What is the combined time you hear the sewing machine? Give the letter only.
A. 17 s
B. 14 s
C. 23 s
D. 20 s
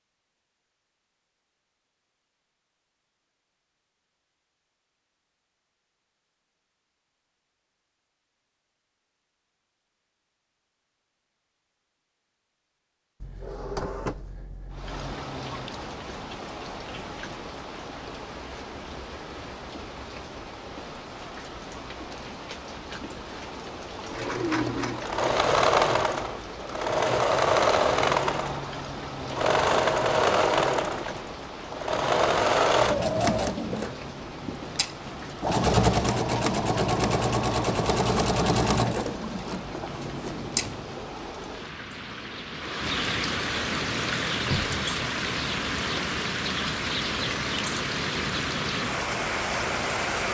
A.